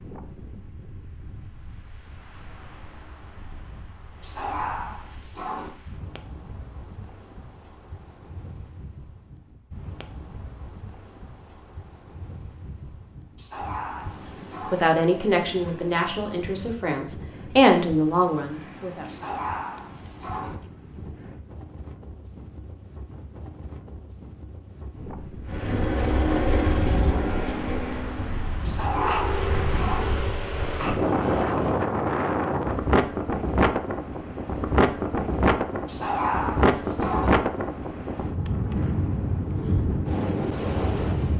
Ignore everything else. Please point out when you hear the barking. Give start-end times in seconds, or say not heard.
4.2-5.7, 13.3-14.8, 19.1-20.6, 28.6-30.1, 35.9-37.4.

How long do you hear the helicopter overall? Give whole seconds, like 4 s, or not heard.
6 s.